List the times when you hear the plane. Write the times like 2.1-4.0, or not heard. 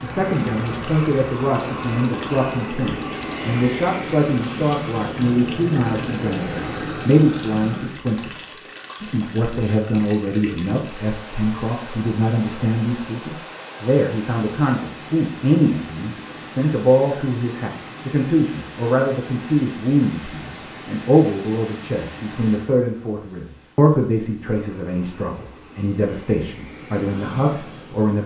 0.0-7.9, 24.5-28.2.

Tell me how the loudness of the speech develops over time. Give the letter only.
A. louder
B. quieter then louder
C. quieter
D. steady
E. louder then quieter
D.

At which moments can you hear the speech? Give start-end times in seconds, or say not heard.
0.0-28.2.